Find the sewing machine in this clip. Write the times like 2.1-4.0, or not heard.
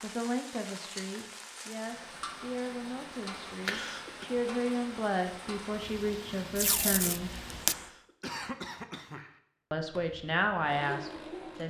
9.9-11.6.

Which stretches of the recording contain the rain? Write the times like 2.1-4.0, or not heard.
0.0-8.0.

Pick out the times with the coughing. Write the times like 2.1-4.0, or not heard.
3.6-4.2, 7.7-9.4.